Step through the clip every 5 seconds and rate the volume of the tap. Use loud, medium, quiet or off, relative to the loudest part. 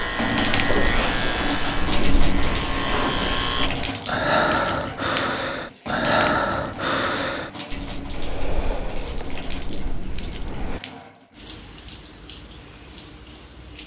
loud, medium, quiet.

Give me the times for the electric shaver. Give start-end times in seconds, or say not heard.
0.0-3.7.